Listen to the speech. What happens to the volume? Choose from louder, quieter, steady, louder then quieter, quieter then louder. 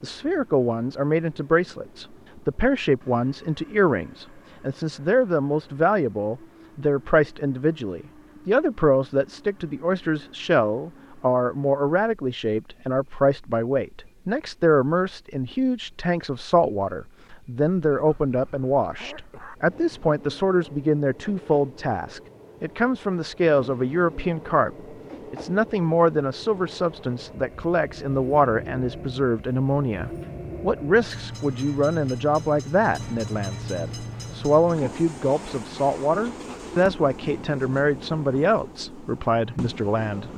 steady.